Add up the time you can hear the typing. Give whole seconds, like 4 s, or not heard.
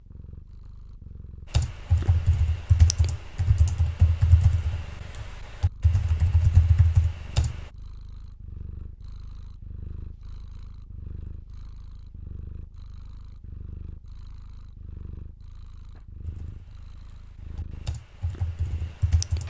9 s.